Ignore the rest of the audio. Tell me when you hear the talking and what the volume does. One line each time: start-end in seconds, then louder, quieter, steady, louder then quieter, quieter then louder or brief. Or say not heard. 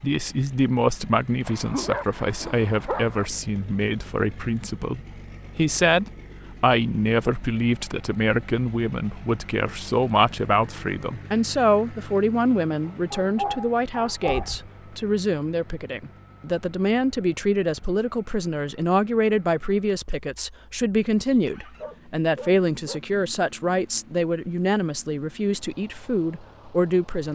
0.0-27.2 steady.